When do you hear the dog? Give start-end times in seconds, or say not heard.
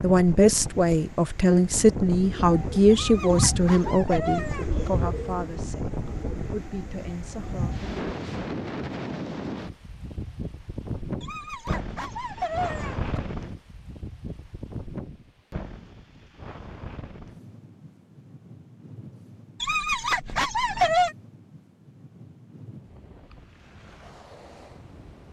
2.9-4.9, 11.2-13.2, 19.6-21.1.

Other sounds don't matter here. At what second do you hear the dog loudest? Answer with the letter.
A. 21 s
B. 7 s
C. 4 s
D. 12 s
A.